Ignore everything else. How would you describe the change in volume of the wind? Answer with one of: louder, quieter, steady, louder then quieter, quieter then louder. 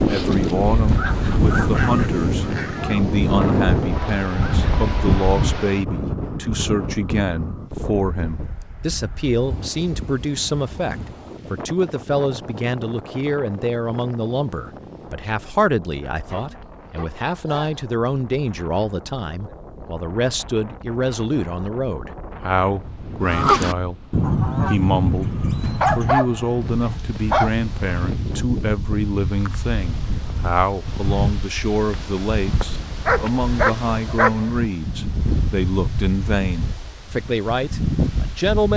quieter then louder.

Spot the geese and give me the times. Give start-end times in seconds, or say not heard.
0.0-5.7, 23.2-26.1.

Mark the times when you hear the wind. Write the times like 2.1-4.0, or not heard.
0.0-38.7.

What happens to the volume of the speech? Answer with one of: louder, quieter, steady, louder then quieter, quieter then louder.
steady.